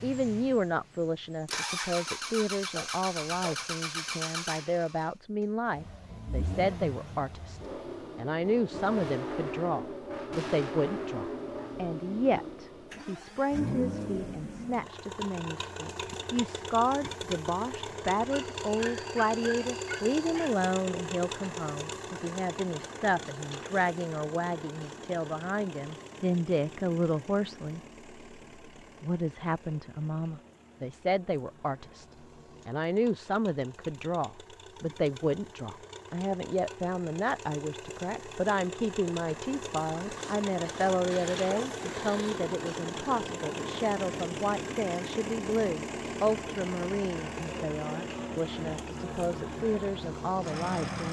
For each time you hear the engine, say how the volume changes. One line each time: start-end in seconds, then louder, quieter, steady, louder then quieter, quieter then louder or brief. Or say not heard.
0.0-51.0 quieter then louder.